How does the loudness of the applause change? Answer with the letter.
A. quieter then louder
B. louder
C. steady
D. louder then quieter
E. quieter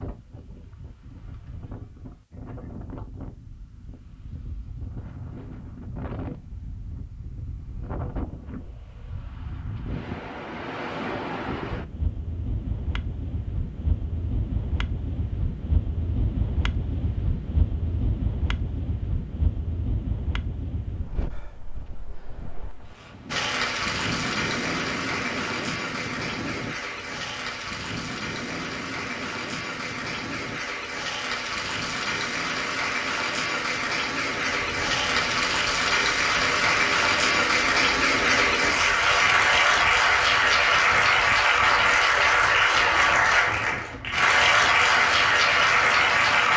B.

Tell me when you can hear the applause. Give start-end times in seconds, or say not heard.
23.2-46.5.